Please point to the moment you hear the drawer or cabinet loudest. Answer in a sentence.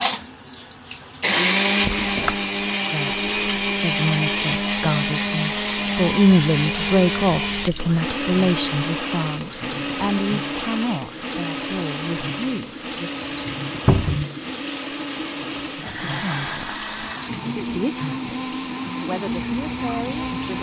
The volume of the drawer or cabinet peaks at 14 seconds.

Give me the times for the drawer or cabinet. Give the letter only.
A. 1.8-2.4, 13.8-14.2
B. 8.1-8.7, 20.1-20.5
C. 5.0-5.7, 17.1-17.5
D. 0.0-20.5
A.